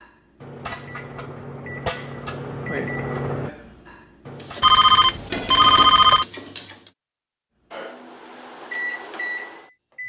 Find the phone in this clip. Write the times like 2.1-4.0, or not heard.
4.6-6.2.